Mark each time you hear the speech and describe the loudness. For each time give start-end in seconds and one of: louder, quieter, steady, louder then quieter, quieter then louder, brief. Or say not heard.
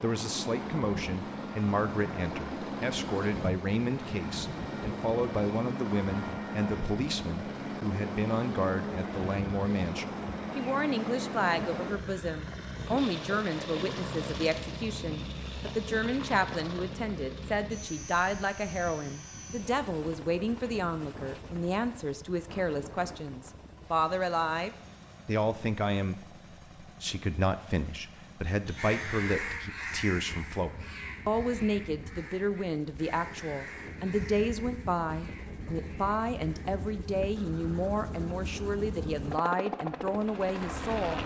0.0-41.2 steady.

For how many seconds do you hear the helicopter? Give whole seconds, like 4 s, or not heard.
41 s.